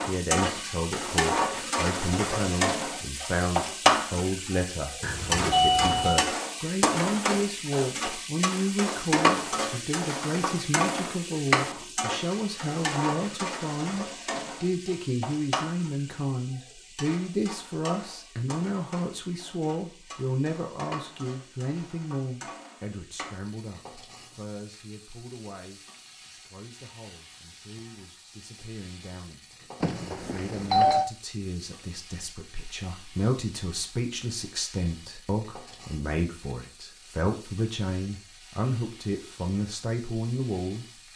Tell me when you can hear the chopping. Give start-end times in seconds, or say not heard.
not heard.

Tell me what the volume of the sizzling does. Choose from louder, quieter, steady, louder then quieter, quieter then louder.
quieter.